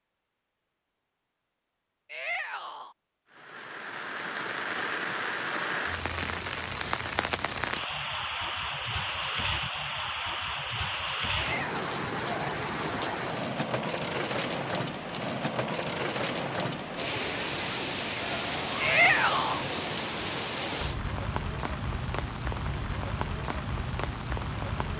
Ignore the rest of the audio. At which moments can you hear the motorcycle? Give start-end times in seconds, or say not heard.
not heard.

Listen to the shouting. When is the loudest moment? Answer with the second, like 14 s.
19 s.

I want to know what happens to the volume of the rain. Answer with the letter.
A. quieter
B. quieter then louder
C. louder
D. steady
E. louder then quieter
D.